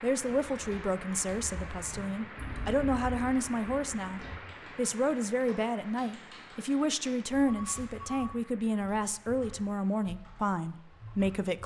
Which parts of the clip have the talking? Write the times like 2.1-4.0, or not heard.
0.0-11.6.